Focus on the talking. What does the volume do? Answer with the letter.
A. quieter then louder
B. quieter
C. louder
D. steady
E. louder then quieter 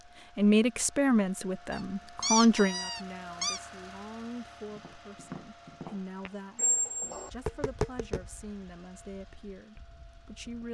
B.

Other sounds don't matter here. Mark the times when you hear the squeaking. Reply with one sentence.
The squeaking can be heard from 1.7 to 3.6 s and from 6.5 to 7.3 s.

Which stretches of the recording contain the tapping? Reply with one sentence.
The tapping can be heard from 4.7 to 10.6 s.